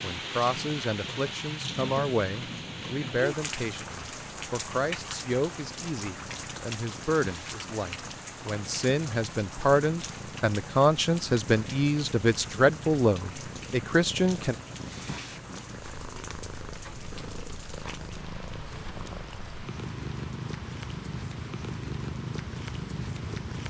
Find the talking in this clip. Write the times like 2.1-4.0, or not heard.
0.0-14.6.